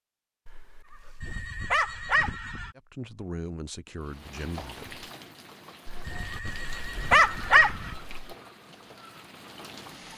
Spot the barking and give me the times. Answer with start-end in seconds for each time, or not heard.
0.5-2.5, 5.8-8.3.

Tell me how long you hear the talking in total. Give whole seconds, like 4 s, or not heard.
2 s.